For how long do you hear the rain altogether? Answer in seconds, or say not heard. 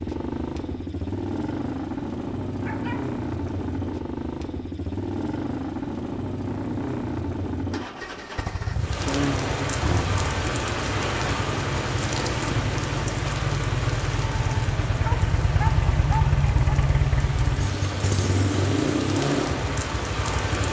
12 s.